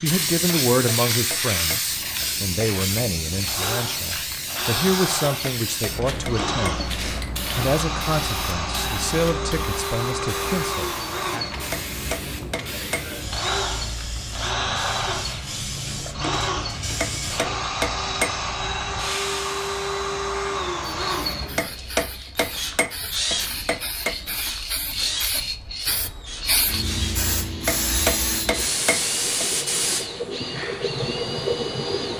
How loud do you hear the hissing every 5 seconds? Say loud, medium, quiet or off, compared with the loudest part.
loud, medium, medium, medium, medium, loud, loud.